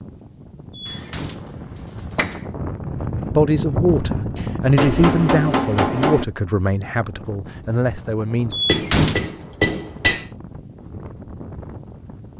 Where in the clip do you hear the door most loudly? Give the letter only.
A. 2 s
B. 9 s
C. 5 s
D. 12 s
B.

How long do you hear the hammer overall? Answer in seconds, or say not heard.
5 s.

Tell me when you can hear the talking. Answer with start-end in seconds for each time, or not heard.
3.2-8.6.